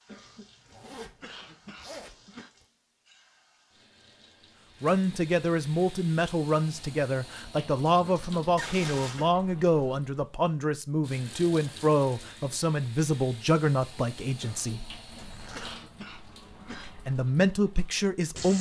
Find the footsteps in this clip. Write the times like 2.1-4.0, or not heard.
not heard.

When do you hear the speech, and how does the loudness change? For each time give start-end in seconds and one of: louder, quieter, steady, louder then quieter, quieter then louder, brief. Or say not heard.
4.8-14.8 steady
16.9-18.5 brief.